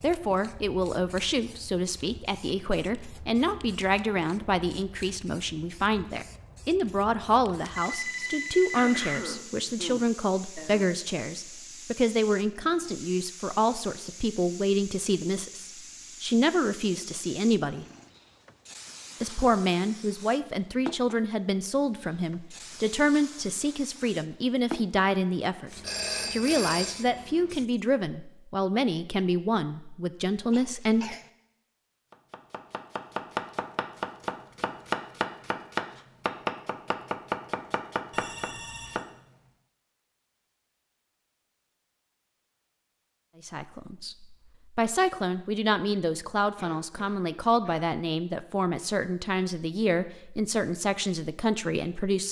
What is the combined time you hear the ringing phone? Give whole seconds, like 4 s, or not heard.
4 s.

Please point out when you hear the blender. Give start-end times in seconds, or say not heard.
not heard.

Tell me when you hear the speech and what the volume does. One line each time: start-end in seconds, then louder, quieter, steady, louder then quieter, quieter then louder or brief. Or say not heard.
0.0-17.9 steady
19.2-31.1 steady
43.5-52.2 steady.